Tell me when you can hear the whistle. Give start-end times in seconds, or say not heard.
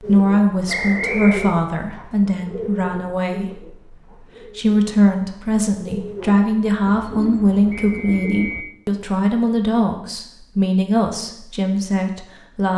0.7-1.6, 7.7-8.8.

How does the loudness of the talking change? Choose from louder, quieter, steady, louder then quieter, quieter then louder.
steady.